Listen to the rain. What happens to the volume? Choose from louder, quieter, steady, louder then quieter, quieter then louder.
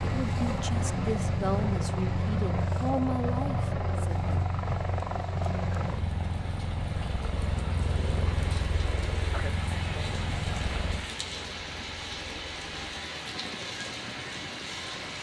louder.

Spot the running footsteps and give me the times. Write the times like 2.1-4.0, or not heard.
not heard.